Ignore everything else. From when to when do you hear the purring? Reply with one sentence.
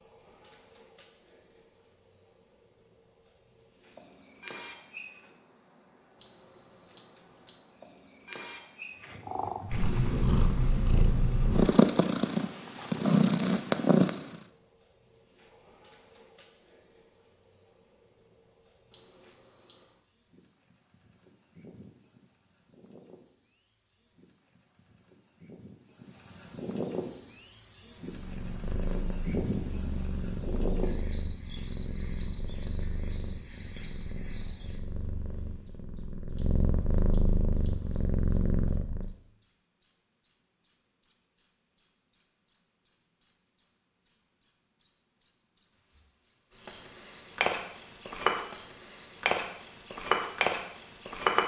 You can hear the purring from 9.1 to 14.4 s and from 28.1 to 39.1 s.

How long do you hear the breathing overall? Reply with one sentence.
You can't hear the breathing here.